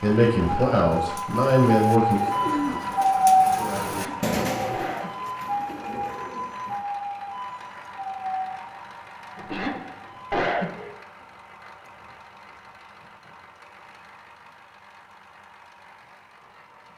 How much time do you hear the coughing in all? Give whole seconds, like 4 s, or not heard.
3 s.